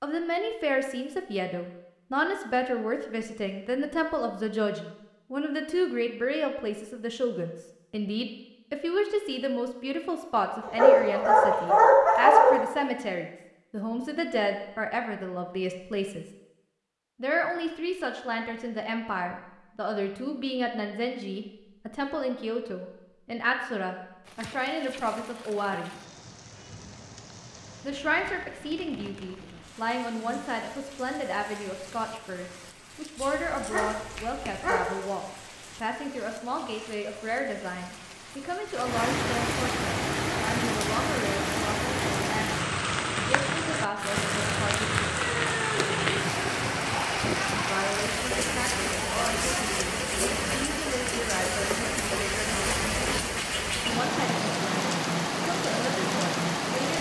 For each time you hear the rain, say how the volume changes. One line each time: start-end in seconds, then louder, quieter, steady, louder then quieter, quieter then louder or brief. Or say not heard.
24.2-56.9 louder.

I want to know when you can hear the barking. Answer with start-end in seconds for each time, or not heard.
10.7-12.6, 33.1-34.9, 45.1-46.6.